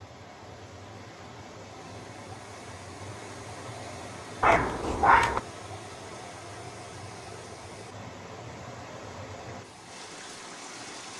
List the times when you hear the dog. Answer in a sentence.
You can hear the dog from 4.4 to 5.4 s.